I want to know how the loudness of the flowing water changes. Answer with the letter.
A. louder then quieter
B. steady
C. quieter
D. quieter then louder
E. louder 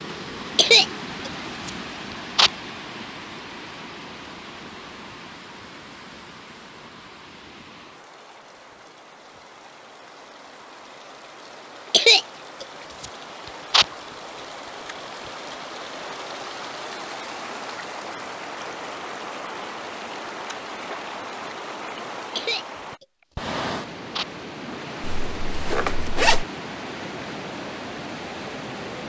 D.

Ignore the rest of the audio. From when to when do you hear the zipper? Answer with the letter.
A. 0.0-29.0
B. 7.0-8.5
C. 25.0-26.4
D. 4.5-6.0
C.